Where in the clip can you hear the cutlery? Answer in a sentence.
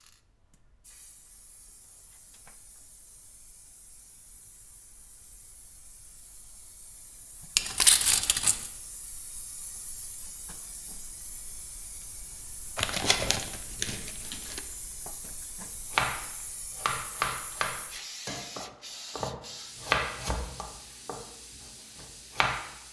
The cutlery can't be heard in this clip.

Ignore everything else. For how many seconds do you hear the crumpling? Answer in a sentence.
You can hear the crumpling for 3 seconds altogether.